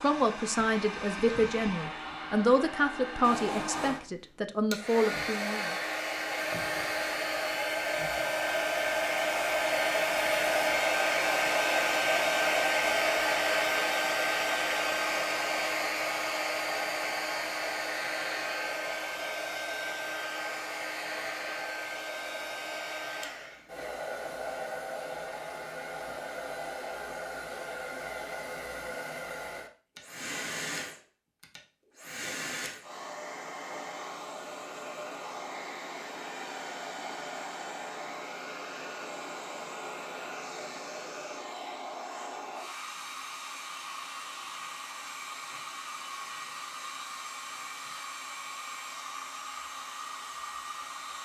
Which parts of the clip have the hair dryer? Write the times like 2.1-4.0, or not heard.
0.0-51.1.